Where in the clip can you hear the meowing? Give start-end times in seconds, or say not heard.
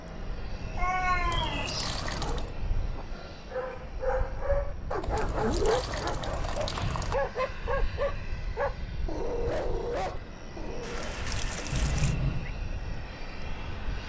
0.8-2.0, 5.0-5.8, 11.7-12.5.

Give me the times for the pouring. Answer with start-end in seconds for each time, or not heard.
1.3-2.5, 5.2-7.2, 10.8-12.2.